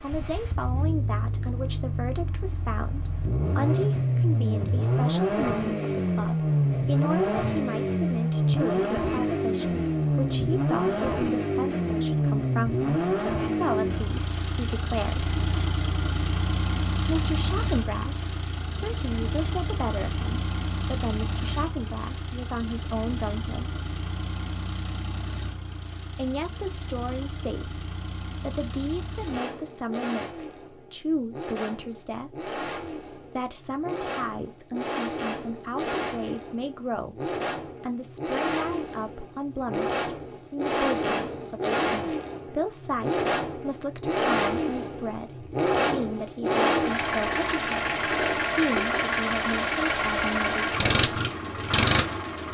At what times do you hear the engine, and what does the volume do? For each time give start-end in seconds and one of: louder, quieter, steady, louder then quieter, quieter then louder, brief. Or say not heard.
0.0-52.4 quieter then louder.